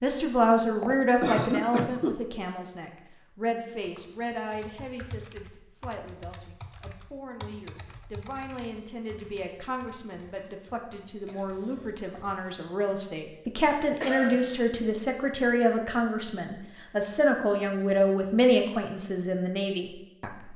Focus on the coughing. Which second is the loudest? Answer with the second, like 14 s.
1 s.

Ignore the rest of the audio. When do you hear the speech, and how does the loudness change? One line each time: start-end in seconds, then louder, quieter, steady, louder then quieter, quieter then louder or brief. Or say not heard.
0.0-20.5 quieter then louder.